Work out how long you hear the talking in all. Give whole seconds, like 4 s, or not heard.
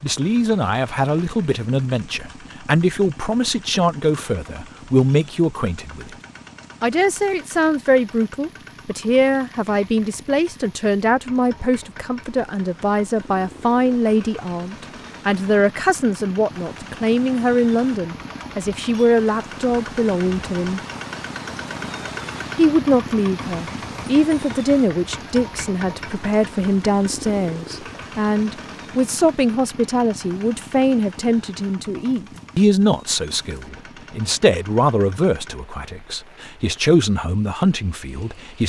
36 s.